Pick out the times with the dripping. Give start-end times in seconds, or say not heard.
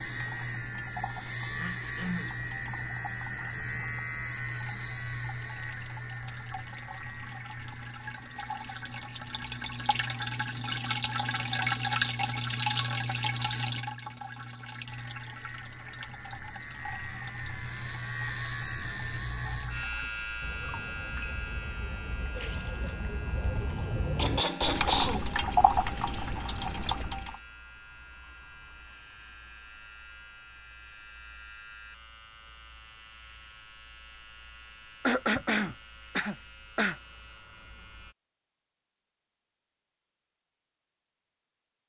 0.1-27.4.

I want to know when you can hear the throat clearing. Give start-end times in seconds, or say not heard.
1.6-2.4, 23.6-25.4, 35.0-37.0.